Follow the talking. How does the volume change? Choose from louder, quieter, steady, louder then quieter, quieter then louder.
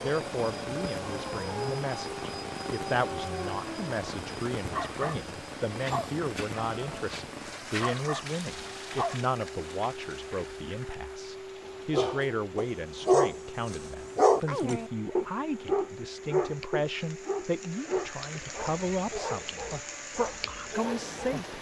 steady.